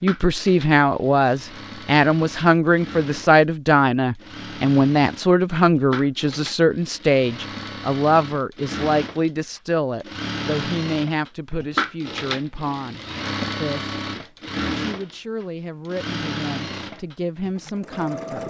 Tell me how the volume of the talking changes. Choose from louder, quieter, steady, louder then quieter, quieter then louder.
quieter.